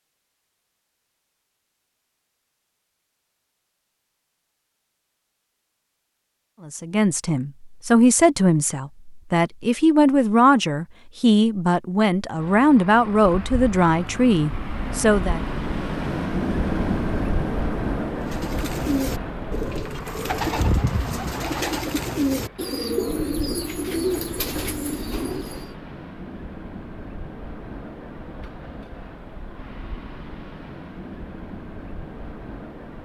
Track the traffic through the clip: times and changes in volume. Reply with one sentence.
You can hear the traffic from 12.3 to 33.0 s, getting quieter.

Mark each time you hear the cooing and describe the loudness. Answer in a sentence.
You can hear the cooing from 18.2 to 25.8 s, at a steady volume.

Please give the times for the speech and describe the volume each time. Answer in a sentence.
The speech can be heard from 6.7 to 15.4 s, at a steady volume.